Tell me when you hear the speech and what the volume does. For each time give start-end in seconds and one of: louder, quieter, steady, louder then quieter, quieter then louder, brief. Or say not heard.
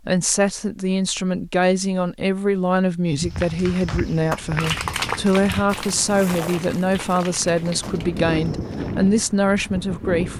0.1-10.3 steady.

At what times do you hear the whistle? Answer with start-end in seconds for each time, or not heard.
not heard.